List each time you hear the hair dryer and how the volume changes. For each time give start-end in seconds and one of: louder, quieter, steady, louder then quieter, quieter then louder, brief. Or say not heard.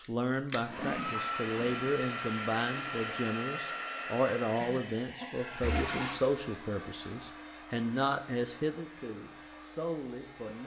0.0-10.6 quieter.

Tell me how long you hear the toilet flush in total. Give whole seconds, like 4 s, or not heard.
3 s.